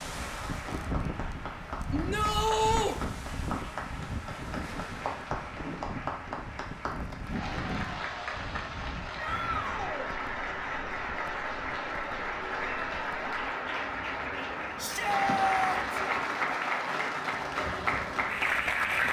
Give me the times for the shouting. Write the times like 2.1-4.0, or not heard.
1.9-3.0, 9.2-10.2, 14.8-15.8.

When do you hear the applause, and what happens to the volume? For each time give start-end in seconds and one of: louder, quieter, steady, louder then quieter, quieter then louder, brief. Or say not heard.
0.0-19.0 louder.